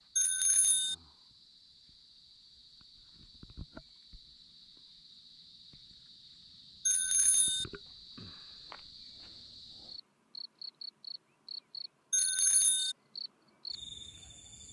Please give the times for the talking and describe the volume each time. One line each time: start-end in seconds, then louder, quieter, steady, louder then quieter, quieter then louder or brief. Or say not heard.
not heard.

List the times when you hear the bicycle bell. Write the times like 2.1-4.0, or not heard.
0.1-0.9, 6.8-7.7, 12.1-12.9.